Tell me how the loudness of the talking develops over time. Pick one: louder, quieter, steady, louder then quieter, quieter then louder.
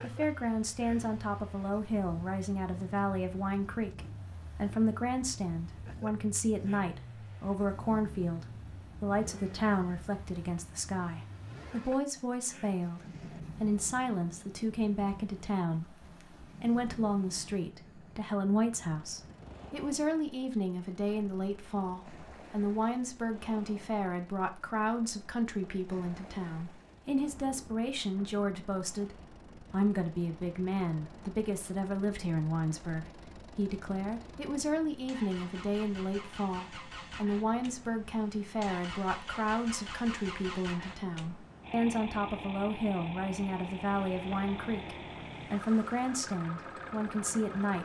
steady.